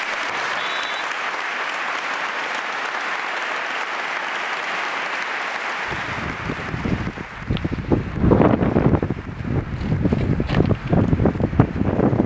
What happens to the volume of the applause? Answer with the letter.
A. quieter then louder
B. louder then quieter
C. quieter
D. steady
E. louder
C.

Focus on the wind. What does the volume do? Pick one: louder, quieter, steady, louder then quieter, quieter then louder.
louder.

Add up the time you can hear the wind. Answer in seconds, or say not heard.
6 s.